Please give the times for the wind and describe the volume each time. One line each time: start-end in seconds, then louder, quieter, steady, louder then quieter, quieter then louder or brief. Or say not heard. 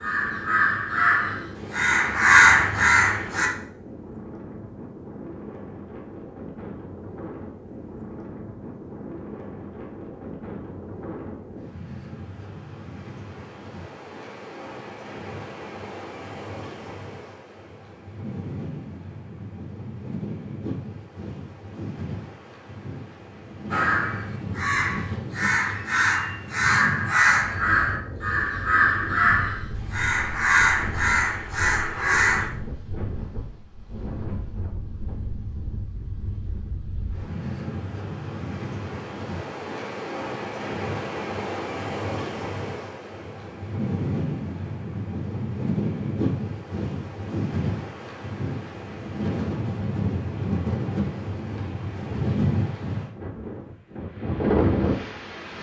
0.0-55.5 louder.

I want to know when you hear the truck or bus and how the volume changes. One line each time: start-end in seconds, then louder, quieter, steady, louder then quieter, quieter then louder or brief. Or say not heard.
not heard.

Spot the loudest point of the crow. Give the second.
2 s.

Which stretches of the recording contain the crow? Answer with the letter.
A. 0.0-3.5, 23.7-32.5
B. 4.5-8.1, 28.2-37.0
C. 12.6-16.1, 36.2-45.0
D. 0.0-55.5
A.